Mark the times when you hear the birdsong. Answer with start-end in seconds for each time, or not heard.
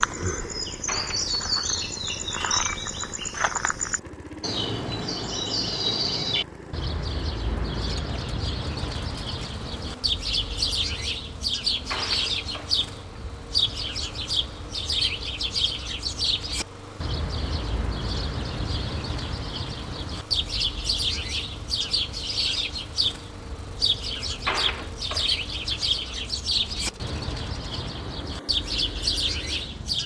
0.0-30.0.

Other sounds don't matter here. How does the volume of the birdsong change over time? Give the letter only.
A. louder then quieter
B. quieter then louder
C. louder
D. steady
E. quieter
D.